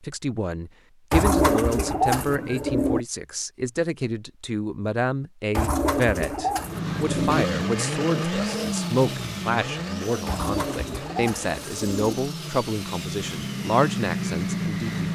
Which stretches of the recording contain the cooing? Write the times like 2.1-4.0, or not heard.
1.1-3.0, 5.5-7.5, 10.2-12.2.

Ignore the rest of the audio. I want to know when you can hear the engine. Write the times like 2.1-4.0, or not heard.
6.6-15.0.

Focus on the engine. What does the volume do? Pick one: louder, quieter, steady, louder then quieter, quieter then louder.
quieter then louder.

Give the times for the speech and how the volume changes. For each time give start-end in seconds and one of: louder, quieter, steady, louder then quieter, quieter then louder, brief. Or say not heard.
0.0-15.0 steady.